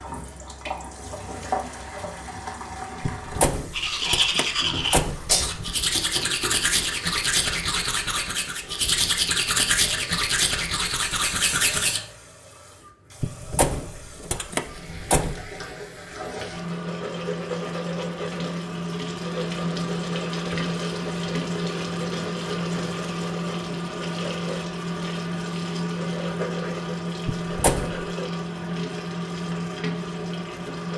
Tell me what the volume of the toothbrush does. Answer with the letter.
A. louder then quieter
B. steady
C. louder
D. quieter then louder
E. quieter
B.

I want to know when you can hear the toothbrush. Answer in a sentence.
The toothbrush can be heard from 3.7 to 12.0 s.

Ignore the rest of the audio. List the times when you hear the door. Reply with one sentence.
You can hear the door from 3.0 to 5.8 s, from 13.2 to 15.5 s and from 27.2 to 28.1 s.